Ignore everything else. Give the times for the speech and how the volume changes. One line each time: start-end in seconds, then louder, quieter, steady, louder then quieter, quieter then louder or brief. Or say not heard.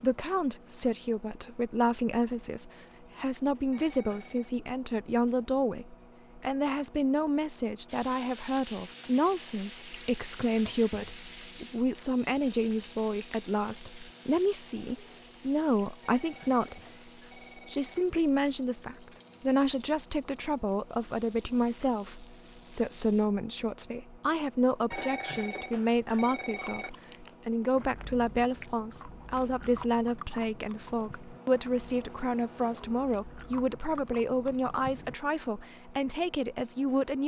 0.0-16.8 steady
17.6-37.2 steady.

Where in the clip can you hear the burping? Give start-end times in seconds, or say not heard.
not heard.